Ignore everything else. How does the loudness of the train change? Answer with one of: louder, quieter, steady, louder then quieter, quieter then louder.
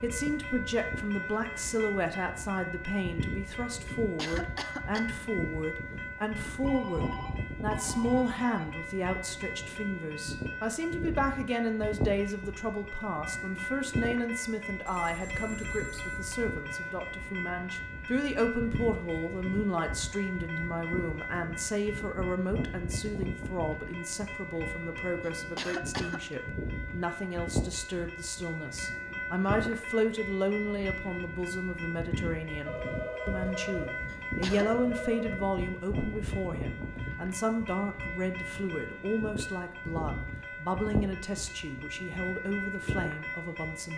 steady.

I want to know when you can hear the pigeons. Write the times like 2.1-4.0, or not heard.
not heard.